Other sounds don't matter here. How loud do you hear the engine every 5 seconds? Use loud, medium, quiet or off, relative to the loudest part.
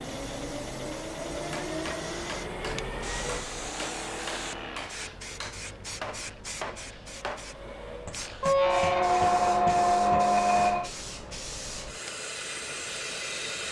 loud, medium, medium.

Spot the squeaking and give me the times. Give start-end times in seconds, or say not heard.
2.6-3.6, 8.4-10.9.